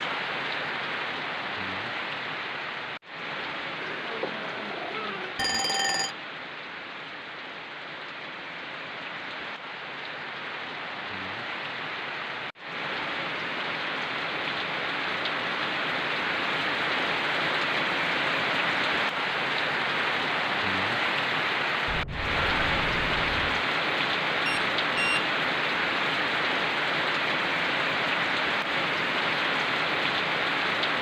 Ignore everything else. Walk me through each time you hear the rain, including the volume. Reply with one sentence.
The rain can be heard from 0.0 to 30.9 s, getting louder.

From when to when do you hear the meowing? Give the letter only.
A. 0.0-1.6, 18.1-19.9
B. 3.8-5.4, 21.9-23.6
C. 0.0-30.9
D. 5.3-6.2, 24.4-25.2
B.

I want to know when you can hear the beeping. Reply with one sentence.
The beeping can be heard from 5.3 to 6.2 s and from 24.4 to 25.2 s.